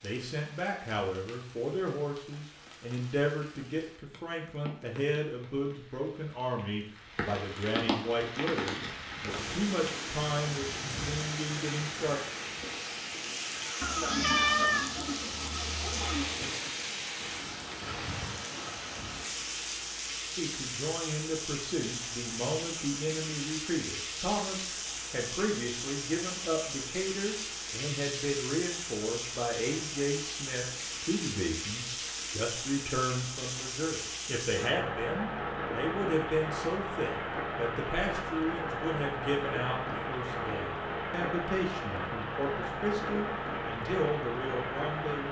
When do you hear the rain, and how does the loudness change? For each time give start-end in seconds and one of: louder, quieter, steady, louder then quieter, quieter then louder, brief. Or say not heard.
0.0-45.2 louder.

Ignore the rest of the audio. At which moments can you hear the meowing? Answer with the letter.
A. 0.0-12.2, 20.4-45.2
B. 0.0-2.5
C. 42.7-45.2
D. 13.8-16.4
D.